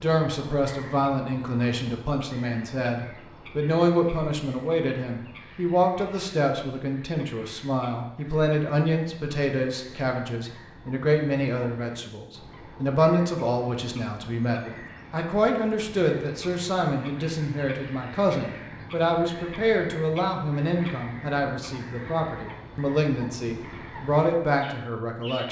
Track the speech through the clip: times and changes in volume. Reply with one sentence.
You can hear the speech from 0.0 to 25.4 s, at a steady volume.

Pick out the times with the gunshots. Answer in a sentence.
You can't hear the gunshots here.